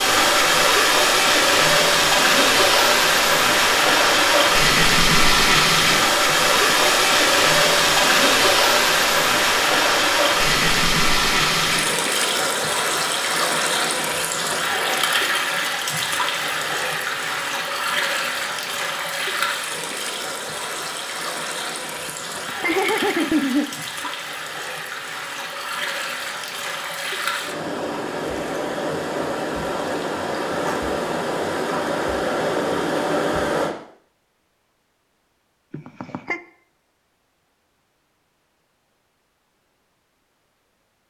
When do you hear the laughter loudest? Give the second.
23 s.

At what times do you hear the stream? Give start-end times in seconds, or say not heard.
0.0-33.8.